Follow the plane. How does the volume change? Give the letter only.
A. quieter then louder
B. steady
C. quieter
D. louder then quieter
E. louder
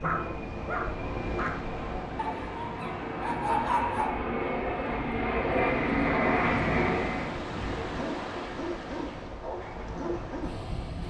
E.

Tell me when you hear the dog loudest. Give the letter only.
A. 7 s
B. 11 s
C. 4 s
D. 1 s
C.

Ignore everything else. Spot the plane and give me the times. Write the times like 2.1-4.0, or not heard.
0.0-7.3.